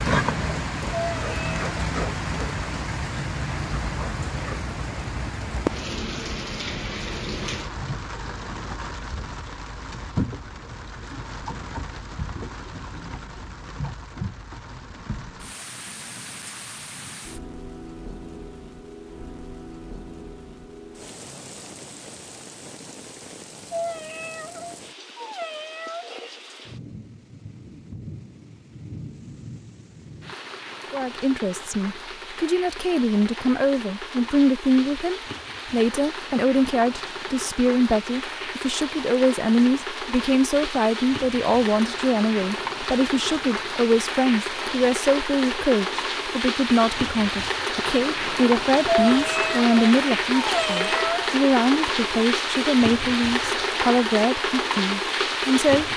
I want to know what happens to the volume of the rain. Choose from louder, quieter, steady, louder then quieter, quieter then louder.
quieter then louder.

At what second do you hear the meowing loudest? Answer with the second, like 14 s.
49 s.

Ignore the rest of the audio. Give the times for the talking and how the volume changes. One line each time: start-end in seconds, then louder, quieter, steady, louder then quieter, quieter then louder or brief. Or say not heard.
30.9-55.9 steady.